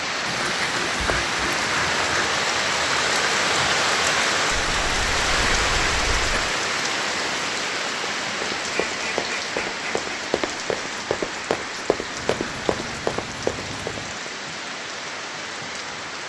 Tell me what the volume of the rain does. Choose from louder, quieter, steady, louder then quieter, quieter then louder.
quieter.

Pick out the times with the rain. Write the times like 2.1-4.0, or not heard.
0.0-16.2.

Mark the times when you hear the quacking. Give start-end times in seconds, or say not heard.
0.2-2.2, 4.5-6.5, 8.6-10.0, 12.2-14.2.